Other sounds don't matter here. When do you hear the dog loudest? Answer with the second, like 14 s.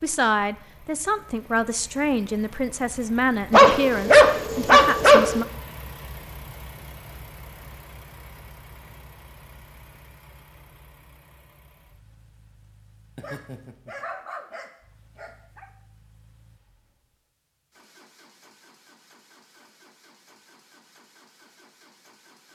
4 s.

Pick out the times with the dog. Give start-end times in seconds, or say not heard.
3.5-5.4, 13.2-15.7.